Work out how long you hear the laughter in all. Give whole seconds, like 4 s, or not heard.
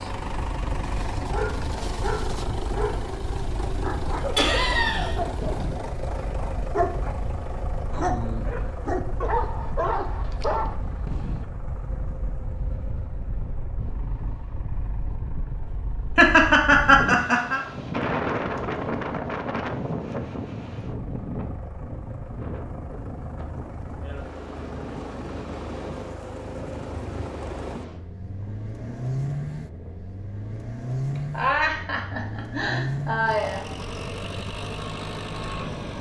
5 s.